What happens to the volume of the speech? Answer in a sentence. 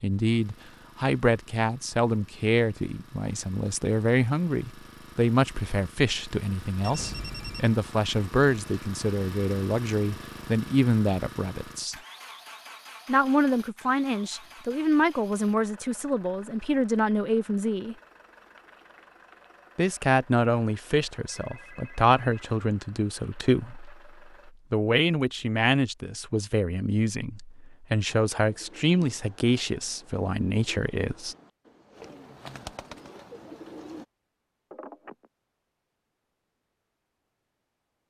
The volume of the speech stays about the same.